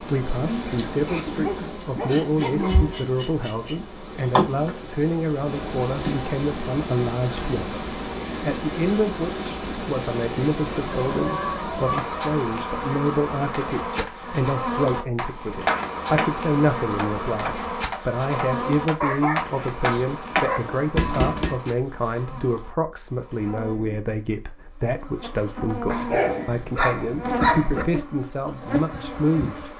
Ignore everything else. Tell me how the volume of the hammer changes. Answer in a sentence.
The loudness of the hammer goes down, then up.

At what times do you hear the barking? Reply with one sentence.
The barking can be heard from 1.1 to 2.9 s, from 10.7 to 12.1 s, from 19.0 to 20.6 s and from 25.9 to 27.9 s.